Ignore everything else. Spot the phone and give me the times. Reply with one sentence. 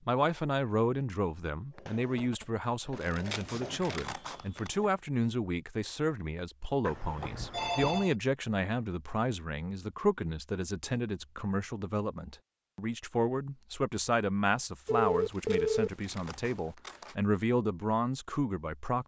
The phone can be heard from 1.8 to 2.5 s, from 6.8 to 8.2 s and from 14.8 to 16.7 s.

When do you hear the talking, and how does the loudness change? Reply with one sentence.
The talking can be heard from 0.1 to 19.0 s, at a steady volume.